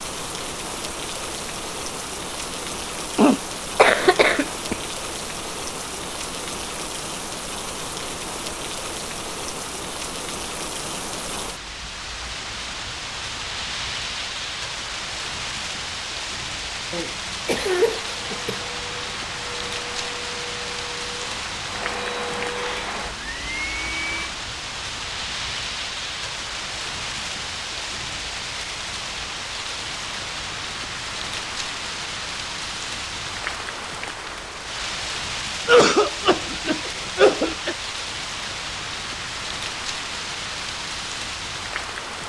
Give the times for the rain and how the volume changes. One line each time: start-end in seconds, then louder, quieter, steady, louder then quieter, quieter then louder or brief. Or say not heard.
0.0-42.2 steady.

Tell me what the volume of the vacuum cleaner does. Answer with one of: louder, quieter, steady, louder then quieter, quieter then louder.
louder.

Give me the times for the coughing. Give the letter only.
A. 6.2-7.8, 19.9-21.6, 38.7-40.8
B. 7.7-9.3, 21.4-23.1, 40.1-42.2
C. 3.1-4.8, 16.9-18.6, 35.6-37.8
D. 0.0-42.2
C.